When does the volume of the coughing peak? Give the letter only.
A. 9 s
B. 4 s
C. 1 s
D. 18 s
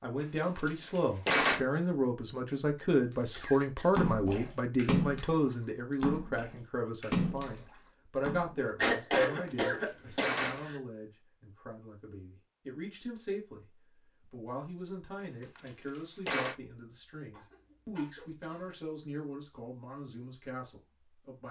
A.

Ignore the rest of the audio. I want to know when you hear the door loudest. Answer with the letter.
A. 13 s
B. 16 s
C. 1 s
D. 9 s
C.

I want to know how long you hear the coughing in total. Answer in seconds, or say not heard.
4 s.